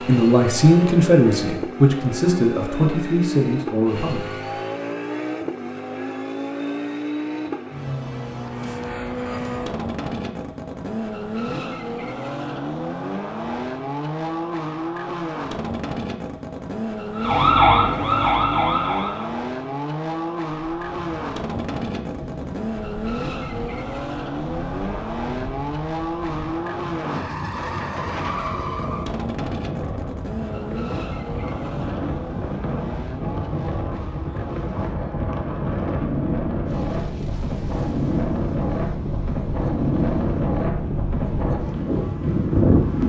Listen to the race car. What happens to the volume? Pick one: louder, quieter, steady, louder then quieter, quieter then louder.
quieter.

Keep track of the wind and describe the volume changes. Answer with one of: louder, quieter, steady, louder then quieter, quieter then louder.
louder.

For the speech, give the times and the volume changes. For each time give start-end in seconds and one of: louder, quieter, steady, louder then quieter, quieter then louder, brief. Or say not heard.
0.1-4.5 quieter.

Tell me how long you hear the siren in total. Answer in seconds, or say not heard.
2 s.